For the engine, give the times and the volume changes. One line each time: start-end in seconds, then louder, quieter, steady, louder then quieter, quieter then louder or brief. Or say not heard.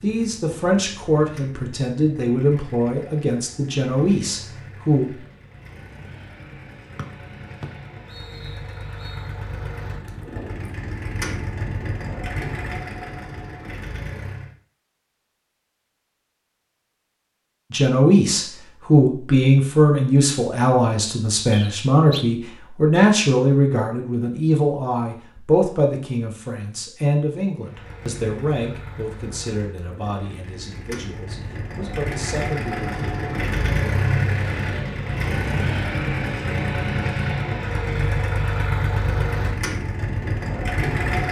0.0-14.6 louder
27.6-41.2 louder.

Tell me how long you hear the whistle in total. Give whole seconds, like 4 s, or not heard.
3 s.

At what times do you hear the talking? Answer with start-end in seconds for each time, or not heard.
0.0-5.2, 17.7-33.2.